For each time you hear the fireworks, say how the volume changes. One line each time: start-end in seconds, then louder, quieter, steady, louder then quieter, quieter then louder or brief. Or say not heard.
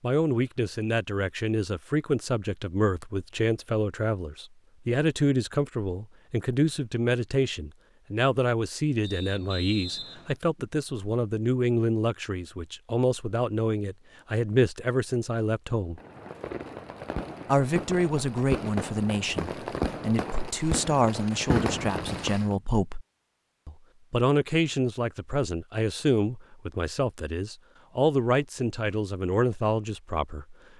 15.9-22.6 louder.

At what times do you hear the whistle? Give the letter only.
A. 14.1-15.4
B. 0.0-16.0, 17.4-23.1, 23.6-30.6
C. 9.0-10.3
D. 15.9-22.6
C.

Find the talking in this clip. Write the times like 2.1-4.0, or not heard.
0.0-16.0, 17.4-23.1, 23.6-30.6.